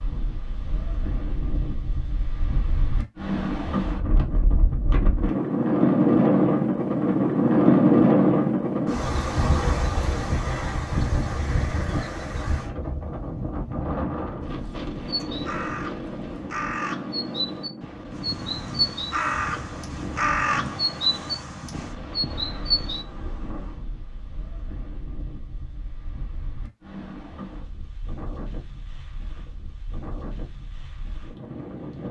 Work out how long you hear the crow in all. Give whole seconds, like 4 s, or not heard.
8 s.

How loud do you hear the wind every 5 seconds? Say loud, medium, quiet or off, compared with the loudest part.
quiet, loud, medium, quiet, quiet, quiet, quiet.